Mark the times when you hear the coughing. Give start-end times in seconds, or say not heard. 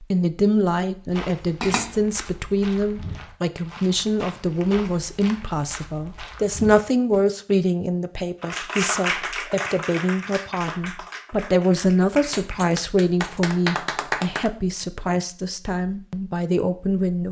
not heard.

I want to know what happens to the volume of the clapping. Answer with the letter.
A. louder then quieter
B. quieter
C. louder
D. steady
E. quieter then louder
E.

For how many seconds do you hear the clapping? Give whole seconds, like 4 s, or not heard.
6 s.